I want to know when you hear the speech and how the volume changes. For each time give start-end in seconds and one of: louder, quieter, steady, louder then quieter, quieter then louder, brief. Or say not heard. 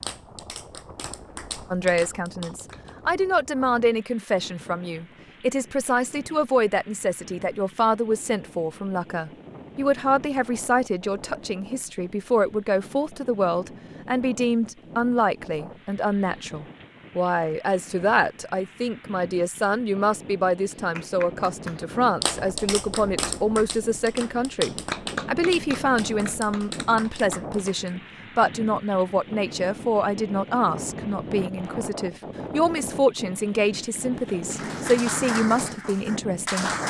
1.7-36.7 steady.